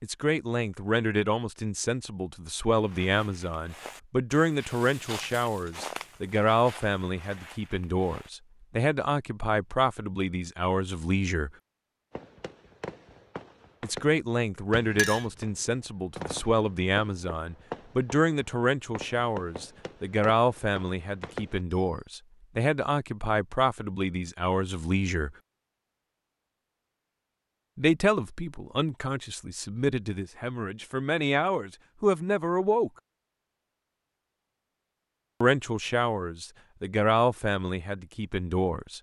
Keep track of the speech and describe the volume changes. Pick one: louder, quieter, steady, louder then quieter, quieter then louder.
steady.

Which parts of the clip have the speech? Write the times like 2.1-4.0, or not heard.
0.0-11.5, 13.8-25.3, 27.8-32.9, 35.4-38.9.